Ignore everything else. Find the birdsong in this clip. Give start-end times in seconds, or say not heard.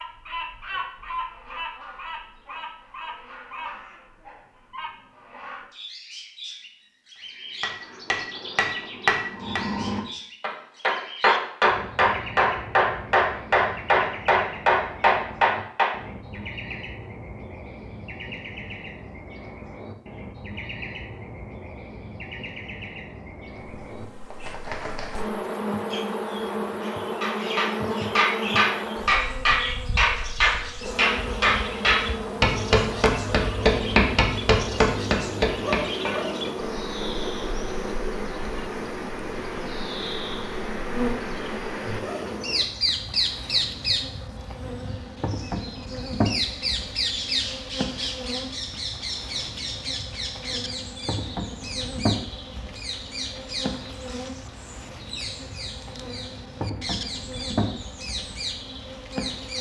0.0-59.5.